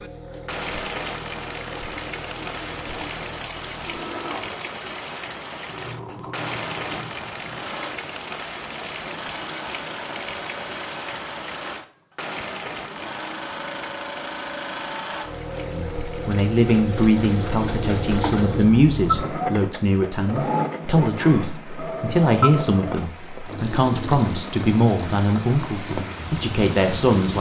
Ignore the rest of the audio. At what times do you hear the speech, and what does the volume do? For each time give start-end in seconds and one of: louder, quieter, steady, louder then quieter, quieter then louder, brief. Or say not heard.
15.7-27.3 steady.